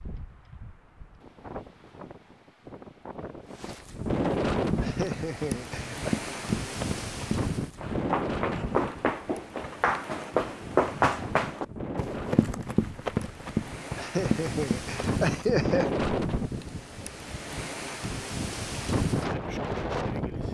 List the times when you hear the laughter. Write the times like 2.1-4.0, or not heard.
4.8-6.2, 13.9-15.9.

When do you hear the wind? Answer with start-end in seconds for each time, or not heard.
0.0-20.4.